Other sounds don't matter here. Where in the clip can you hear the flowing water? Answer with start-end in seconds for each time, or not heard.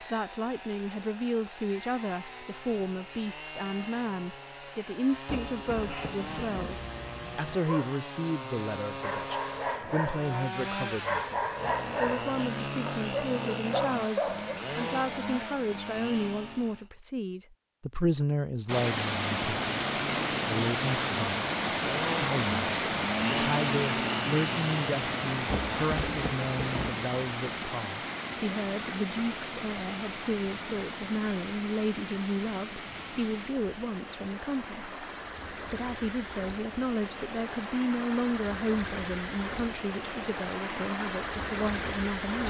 18.6-42.4.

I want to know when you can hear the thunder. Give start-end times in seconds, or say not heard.
5.2-6.8, 25.5-27.0.